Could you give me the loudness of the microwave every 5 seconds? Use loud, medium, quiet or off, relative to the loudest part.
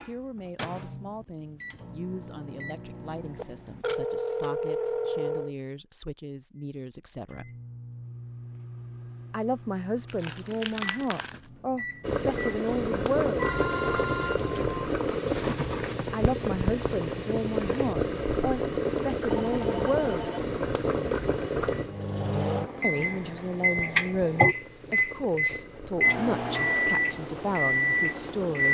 quiet, quiet, quiet, off, loud, loud.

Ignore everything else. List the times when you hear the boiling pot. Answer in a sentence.
The boiling pot can be heard from 12.0 to 28.6 s.